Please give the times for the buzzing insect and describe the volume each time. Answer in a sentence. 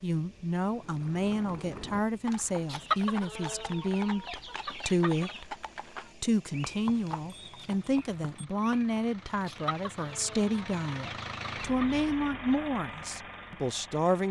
You can't hear the buzzing insect here.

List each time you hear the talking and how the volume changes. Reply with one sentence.
The talking can be heard from 0.0 to 5.5 s, at a steady volume; and from 6.2 to 14.2 s, at a steady volume.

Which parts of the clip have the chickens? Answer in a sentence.
The chickens can be heard from 2.6 to 5.5 s and from 9.4 to 12.1 s.